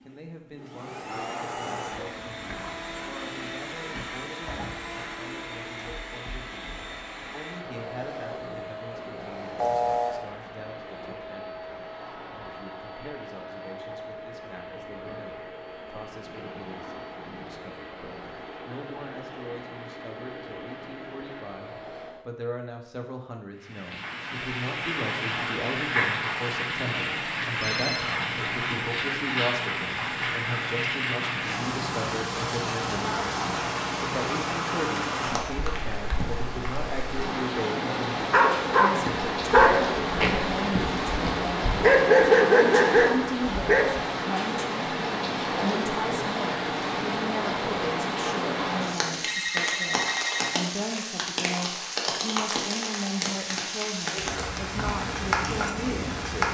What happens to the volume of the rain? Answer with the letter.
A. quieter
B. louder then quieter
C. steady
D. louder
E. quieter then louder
C.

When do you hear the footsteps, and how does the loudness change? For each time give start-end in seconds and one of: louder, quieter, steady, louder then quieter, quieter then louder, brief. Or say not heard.
not heard.